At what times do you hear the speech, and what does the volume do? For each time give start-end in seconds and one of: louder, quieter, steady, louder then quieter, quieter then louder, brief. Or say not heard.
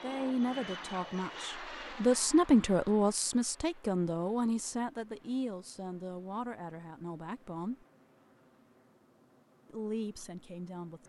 0.0-7.8 louder then quieter
9.7-11.0 brief.